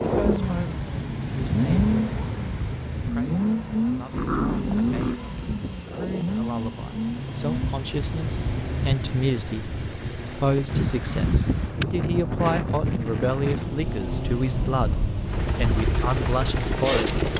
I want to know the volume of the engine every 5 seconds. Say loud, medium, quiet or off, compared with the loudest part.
loud, medium, medium, loud.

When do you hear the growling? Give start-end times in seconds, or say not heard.
4.1-5.2.